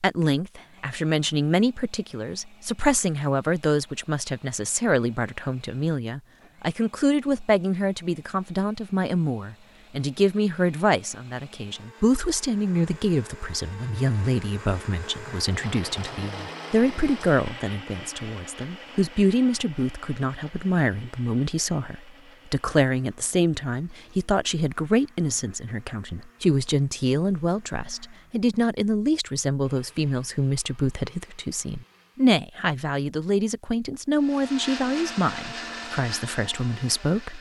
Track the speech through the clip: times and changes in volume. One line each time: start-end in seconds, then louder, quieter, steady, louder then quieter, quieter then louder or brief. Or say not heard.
0.0-37.3 steady.